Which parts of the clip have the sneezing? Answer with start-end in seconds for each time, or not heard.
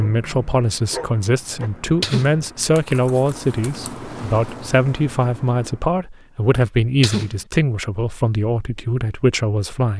1.6-2.4, 6.6-7.4.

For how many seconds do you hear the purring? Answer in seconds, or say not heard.
not heard.